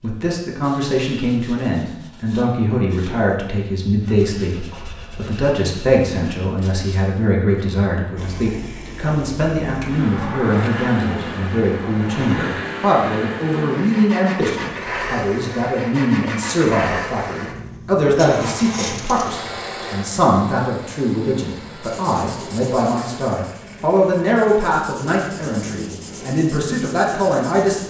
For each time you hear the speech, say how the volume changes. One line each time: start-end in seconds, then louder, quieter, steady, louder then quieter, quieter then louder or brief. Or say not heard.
0.0-27.8 steady.